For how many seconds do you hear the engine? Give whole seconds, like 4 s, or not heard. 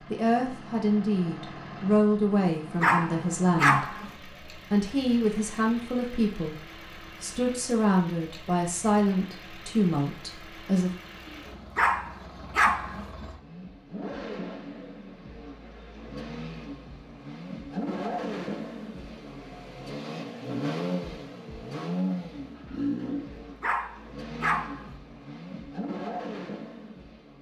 27 s.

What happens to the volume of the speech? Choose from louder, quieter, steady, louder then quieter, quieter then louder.
steady.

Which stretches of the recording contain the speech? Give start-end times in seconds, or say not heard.
0.1-6.5, 7.2-10.9.